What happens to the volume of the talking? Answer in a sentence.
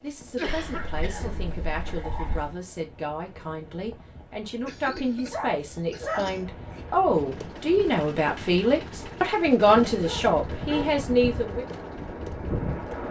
The volume of the talking goes up.